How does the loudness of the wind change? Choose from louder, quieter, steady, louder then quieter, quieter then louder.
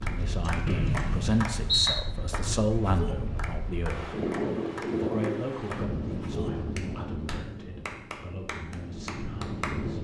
louder then quieter.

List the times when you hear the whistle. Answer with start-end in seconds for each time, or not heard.
0.7-2.0.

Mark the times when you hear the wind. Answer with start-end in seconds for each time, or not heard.
0.0-9.9.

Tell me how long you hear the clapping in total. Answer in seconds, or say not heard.
10 s.